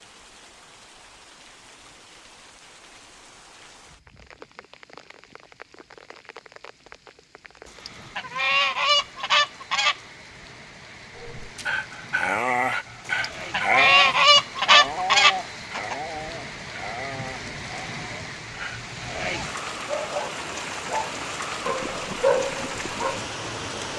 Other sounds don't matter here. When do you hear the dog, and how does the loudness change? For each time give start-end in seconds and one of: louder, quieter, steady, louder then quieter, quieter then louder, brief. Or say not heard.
11.2-23.2 quieter then louder.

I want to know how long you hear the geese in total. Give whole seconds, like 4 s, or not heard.
5 s.